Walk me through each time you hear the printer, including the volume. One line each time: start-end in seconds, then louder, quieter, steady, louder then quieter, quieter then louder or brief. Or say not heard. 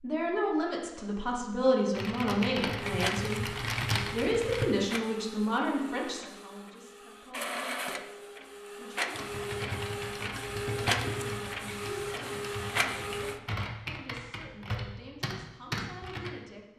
2.8-13.4 quieter then louder.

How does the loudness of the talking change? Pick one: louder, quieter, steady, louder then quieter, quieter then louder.
quieter.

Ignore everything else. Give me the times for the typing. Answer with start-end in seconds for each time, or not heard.
1.9-4.7, 9.2-16.3.